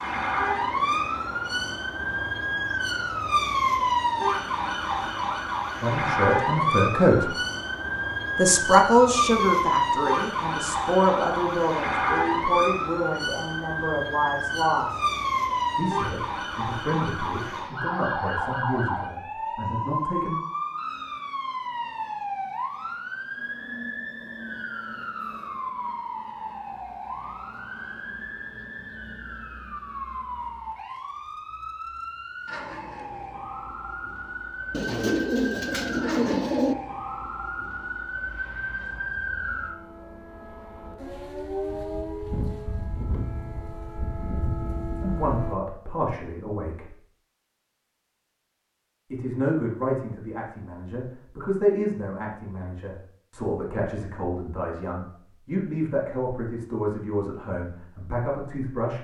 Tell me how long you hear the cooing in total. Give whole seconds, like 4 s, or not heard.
2 s.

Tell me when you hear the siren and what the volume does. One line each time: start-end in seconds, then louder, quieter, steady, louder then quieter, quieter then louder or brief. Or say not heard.
0.0-45.5 quieter.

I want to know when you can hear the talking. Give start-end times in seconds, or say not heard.
5.8-7.3, 8.3-15.0, 15.8-20.4, 45.0-47.0, 49.1-59.0.